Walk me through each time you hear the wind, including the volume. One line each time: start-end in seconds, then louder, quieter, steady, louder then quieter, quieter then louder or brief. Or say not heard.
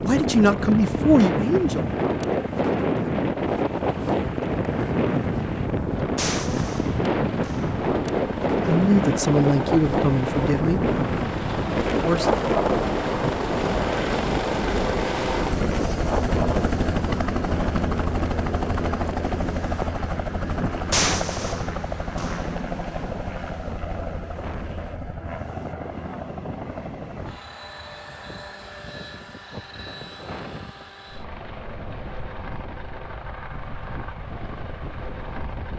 0.0-35.7 quieter.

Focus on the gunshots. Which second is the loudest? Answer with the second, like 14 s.
21 s.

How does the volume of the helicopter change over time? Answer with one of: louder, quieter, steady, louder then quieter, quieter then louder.
louder then quieter.